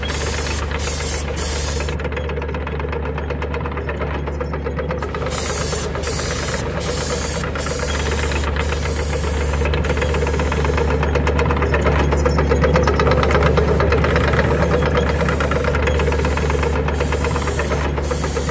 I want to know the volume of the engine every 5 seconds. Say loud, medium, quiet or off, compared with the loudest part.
medium, medium, loud, loud.